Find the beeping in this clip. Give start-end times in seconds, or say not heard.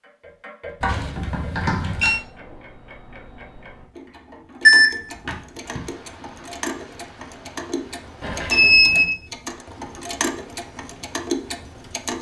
0.8-2.2, 4.7-5.8, 8.2-9.1.